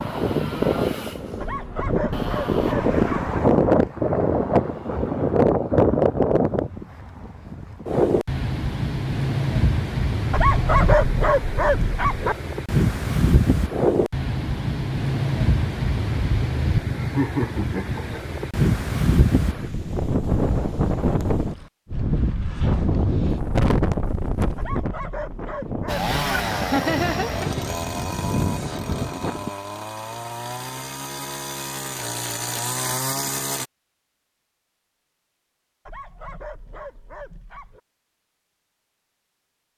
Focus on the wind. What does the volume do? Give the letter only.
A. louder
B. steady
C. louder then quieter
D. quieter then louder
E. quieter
E.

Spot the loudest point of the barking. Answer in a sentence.
The volume of the barking peaks at 11 seconds.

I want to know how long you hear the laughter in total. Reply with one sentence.
You can hear the laughter for 2 seconds altogether.